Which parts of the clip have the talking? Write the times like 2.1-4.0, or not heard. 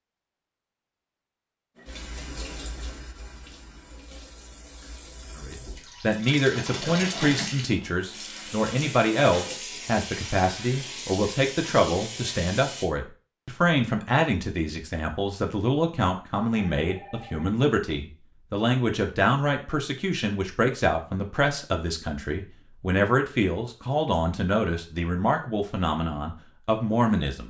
5.3-27.4.